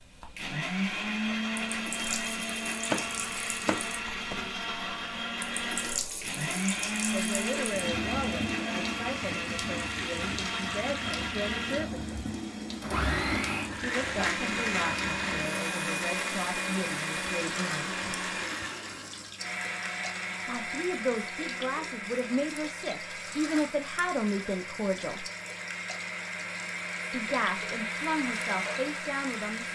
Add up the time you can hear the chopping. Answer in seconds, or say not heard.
2 s.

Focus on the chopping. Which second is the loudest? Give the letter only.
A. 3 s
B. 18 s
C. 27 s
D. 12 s
A.